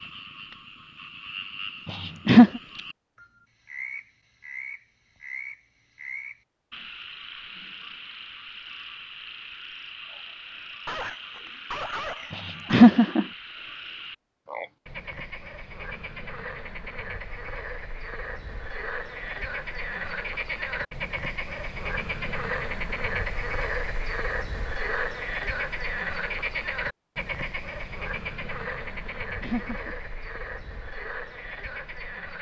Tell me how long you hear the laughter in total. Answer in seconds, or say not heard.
2 s.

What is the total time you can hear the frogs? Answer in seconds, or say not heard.
32 s.